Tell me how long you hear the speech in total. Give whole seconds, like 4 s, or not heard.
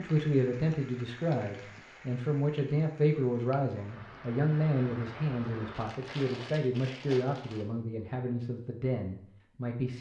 10 s.